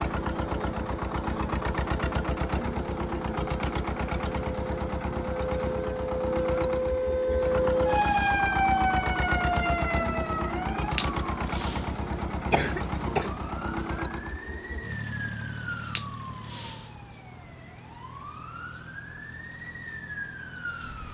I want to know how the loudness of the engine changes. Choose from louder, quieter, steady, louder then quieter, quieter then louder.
quieter.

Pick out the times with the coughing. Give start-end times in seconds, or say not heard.
12.5-13.3.